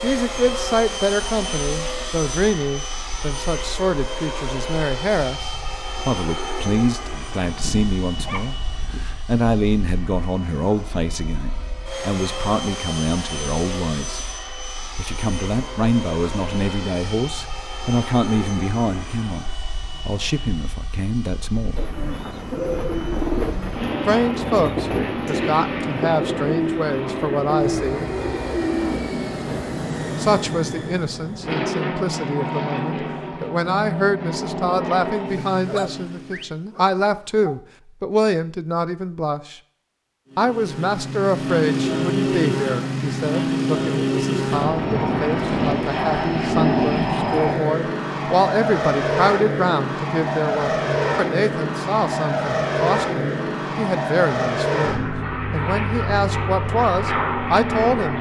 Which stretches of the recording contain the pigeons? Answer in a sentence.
You can hear the pigeons from 21.8 to 29.6 s.